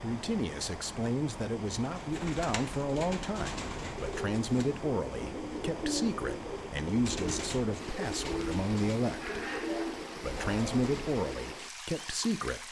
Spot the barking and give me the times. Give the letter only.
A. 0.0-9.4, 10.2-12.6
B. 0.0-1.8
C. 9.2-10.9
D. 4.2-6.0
C.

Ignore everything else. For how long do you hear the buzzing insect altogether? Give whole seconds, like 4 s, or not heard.
not heard.